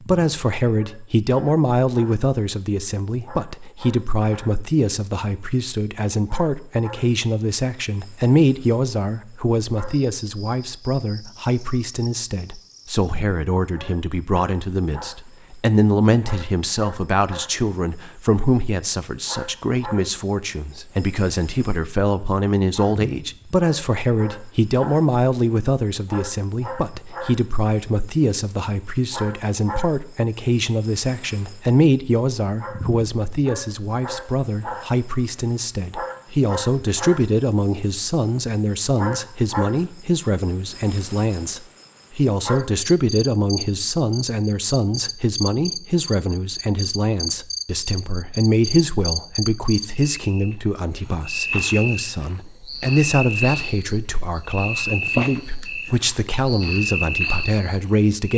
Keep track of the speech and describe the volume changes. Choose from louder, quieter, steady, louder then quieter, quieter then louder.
steady.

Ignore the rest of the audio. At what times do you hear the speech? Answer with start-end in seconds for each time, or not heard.
0.0-58.3.